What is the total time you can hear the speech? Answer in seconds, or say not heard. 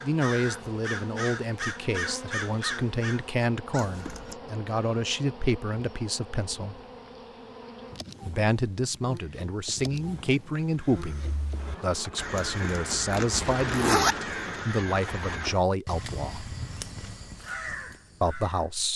16 s.